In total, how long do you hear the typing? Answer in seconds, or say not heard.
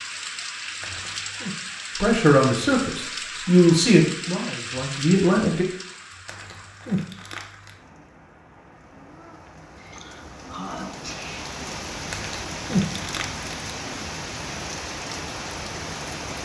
not heard.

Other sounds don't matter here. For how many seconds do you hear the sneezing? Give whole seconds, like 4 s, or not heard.
2 s.